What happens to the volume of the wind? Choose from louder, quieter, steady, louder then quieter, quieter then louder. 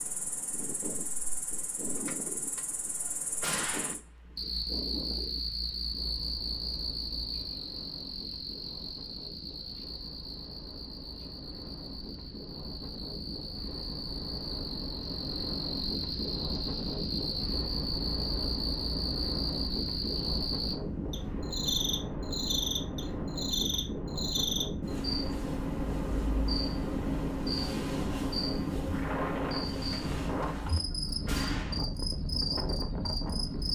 louder.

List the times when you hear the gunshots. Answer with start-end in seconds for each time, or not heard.
1.9-4.0, 29.8-31.8.